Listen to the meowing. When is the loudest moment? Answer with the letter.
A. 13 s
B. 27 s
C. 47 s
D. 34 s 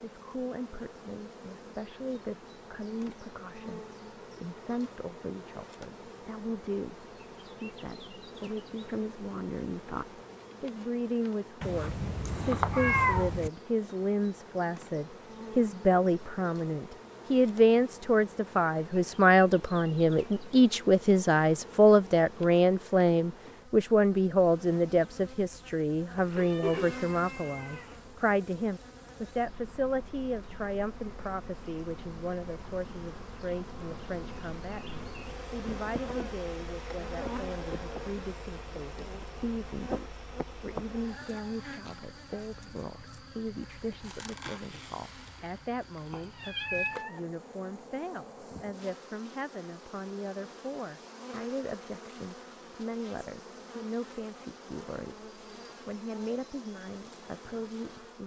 A.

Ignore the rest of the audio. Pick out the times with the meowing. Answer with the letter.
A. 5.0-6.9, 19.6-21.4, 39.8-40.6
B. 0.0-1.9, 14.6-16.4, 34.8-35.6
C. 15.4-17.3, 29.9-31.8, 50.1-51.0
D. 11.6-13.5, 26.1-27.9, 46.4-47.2
D.